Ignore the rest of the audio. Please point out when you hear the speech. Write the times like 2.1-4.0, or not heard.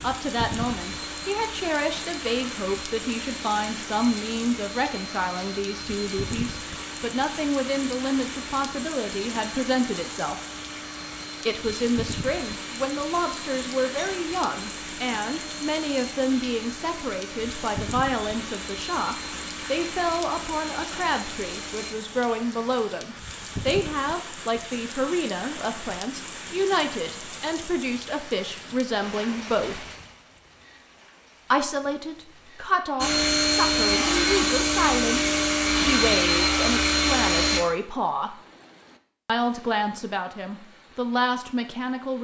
0.0-10.4, 11.4-29.9, 31.5-38.4, 39.2-42.2.